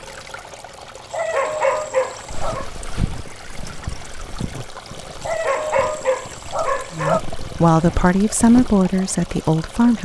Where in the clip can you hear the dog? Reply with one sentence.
The dog can be heard from 1.1 to 2.6 s and from 5.2 to 7.2 s.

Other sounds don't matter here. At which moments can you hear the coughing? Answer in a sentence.
You can't hear the coughing here.